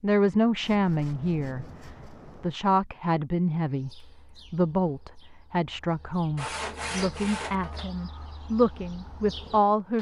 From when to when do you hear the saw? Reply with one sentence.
The saw can be heard from 0.6 to 2.6 s and from 6.3 to 7.9 s.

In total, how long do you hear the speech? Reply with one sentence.
You can hear the speech for 9 seconds altogether.